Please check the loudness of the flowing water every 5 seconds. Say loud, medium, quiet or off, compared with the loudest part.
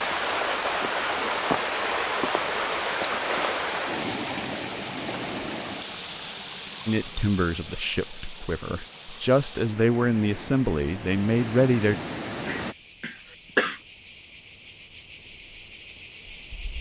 loud, medium, medium, off.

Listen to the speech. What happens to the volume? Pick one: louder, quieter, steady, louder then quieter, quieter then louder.
quieter then louder.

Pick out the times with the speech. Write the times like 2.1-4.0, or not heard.
6.8-12.0.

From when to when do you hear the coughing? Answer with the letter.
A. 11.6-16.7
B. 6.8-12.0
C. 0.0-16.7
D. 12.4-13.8
D.